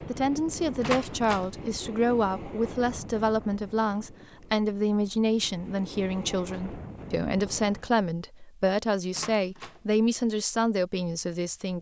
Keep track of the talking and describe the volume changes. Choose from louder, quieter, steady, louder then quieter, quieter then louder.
steady.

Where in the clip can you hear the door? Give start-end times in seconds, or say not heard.
0.8-1.5, 9.1-9.8.